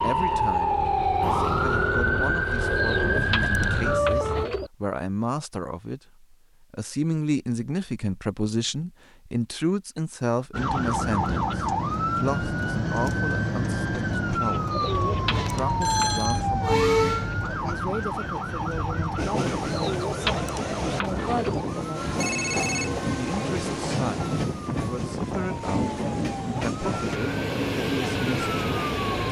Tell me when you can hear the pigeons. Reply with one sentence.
The pigeons can be heard from 2.8 to 4.7 s, from 14.7 to 16.1 s and from 19.6 to 21.6 s.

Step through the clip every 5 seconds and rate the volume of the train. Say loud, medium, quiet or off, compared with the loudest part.
off, off, off, loud, loud, loud.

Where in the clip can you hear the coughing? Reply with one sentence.
You can't hear the coughing here.